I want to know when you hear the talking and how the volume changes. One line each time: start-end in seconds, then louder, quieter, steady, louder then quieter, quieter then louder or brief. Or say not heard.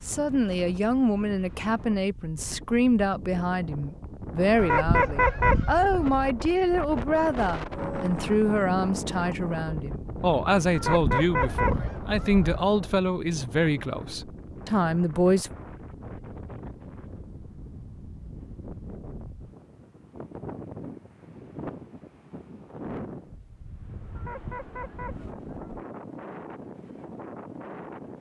0.1-15.5 steady.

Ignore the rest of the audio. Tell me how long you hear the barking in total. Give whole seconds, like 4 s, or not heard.
not heard.